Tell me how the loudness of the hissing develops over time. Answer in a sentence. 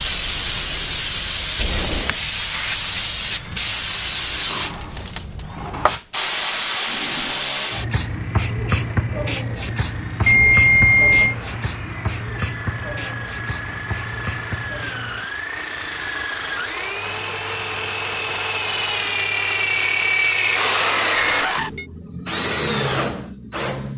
The volume of the hissing goes down.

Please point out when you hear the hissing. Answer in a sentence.
You can hear the hissing from 0.0 to 21.4 s.